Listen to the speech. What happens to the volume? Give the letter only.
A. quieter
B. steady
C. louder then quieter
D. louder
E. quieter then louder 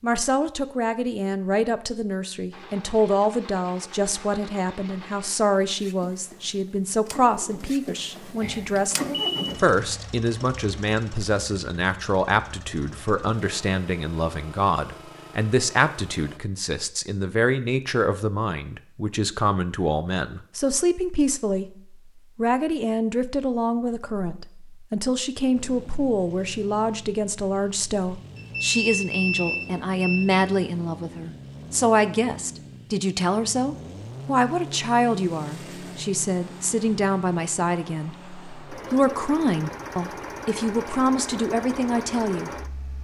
B.